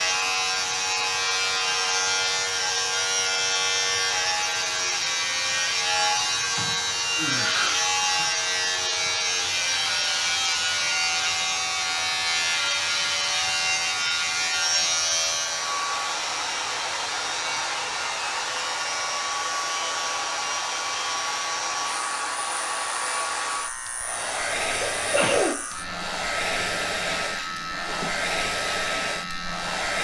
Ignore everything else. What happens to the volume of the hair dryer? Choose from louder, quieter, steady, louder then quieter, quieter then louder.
louder.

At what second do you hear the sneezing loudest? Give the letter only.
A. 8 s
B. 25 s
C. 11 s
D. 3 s
B.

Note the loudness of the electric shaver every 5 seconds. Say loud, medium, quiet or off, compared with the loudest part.
loud, loud, loud, medium, medium, medium.